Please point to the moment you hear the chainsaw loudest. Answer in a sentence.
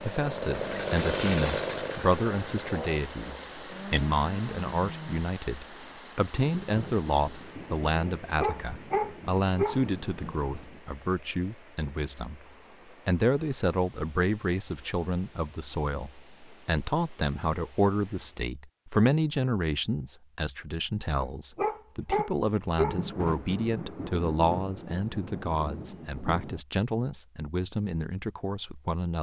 The loudest moment of the chainsaw is at 1 second.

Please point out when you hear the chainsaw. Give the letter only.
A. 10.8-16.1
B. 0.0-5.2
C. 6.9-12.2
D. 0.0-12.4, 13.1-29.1
B.